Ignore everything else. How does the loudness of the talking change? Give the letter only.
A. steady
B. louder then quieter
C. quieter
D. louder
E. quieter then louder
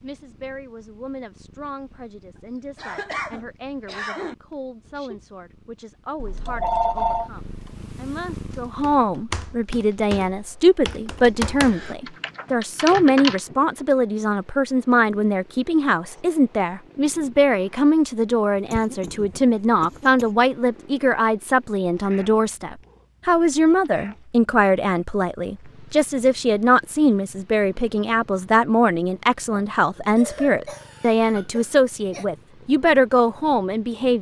D.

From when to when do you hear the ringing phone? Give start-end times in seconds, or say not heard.
6.5-7.3.